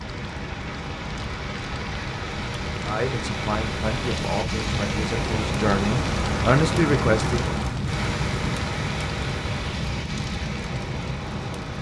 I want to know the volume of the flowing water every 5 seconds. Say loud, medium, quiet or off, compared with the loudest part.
loud, loud, medium.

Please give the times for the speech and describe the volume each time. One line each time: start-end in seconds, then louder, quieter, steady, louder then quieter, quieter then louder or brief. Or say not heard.
2.9-7.5 louder.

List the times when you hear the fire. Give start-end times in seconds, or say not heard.
0.0-11.7.